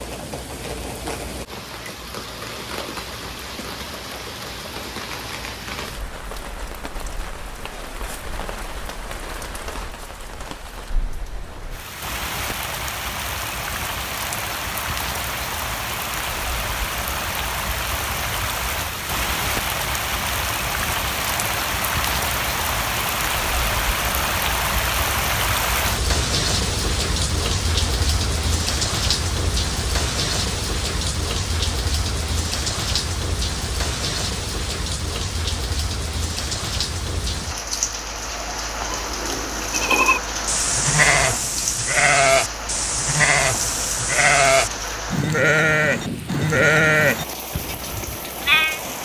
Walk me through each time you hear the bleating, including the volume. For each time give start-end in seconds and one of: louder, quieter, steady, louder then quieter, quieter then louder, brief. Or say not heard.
38.8-48.8 steady.